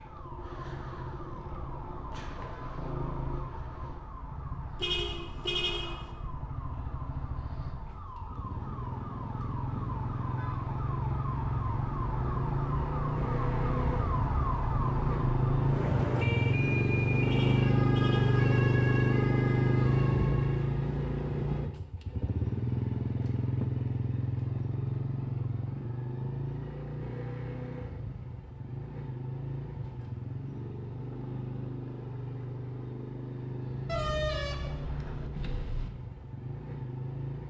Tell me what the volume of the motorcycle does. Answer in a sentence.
The volume of the motorcycle goes up, then down.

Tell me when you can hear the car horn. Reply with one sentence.
The car horn can be heard from 4.8 to 6.1 s, from 17.2 to 18.4 s and from 33.9 to 35.9 s.